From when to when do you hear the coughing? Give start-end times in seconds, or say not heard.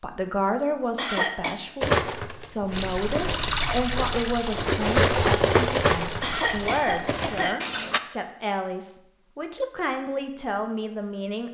0.9-1.6, 6.2-7.6.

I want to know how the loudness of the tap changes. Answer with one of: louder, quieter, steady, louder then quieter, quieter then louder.
quieter.